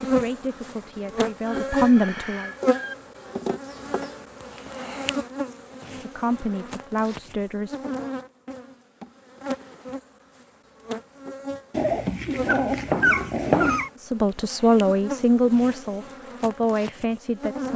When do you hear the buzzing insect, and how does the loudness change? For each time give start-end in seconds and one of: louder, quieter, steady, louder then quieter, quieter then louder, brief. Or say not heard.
0.0-17.7 quieter.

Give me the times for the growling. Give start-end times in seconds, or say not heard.
11.7-13.9.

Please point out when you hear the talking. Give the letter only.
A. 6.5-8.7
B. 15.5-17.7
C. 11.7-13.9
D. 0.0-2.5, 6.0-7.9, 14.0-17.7
D.